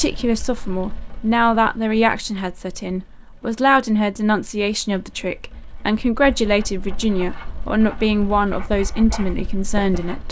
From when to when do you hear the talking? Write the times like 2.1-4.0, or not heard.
0.0-10.2.